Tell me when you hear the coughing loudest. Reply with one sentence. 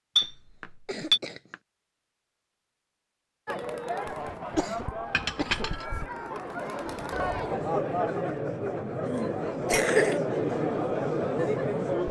The loudest moment of the coughing is at 10 seconds.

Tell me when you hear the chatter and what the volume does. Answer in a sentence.
You can hear the chatter from 3.5 to 12.0 s, getting louder.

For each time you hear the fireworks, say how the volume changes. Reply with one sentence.
The fireworks can't be heard in this clip.